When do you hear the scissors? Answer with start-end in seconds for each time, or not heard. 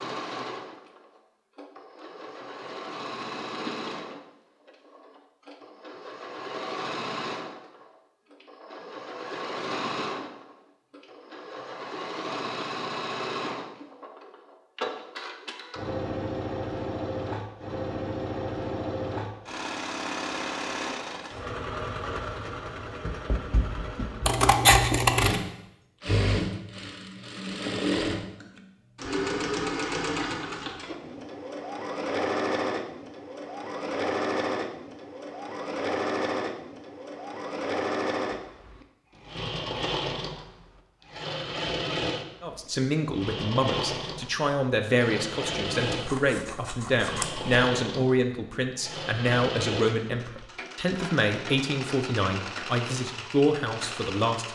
24.2-25.4, 45.9-47.5.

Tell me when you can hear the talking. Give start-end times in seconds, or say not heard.
42.4-54.4.